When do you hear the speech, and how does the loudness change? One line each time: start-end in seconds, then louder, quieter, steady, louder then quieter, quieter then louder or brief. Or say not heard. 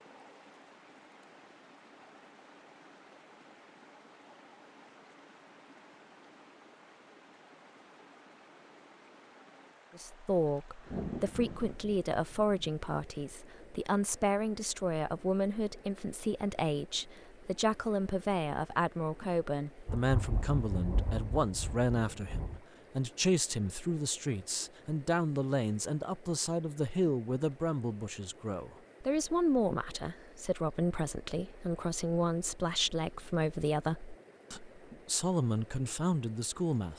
9.9-36.9 steady.